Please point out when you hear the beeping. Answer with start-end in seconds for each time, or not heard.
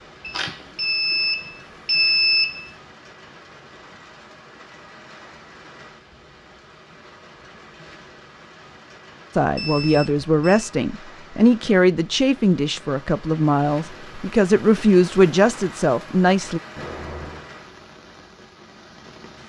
0.2-2.7, 9.6-10.7, 16.8-17.5.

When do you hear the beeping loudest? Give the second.
2 s.